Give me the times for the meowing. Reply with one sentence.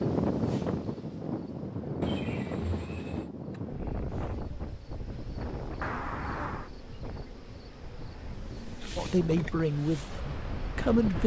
The meowing can be heard from 2.0 to 3.3 s and from 5.8 to 6.7 s.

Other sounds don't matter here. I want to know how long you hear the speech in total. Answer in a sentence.
You can hear the speech for 2 seconds altogether.